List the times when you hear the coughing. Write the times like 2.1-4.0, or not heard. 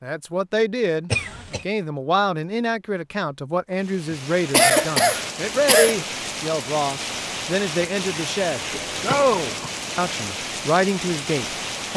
1.1-1.6, 4.1-6.0, 8.7-9.7.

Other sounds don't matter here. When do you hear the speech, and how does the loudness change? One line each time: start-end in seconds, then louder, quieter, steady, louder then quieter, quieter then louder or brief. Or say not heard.
0.0-11.9 steady.